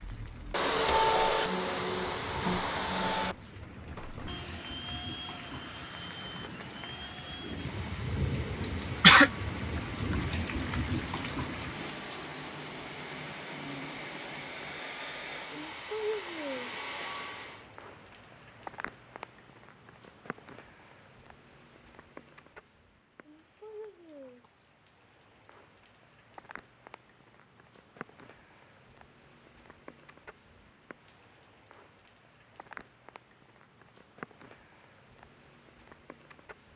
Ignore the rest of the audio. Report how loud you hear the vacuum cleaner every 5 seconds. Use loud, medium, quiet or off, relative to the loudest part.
loud, quiet, quiet, medium, off, off, off, off.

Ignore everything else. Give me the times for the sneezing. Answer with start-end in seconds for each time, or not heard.
8.6-9.3.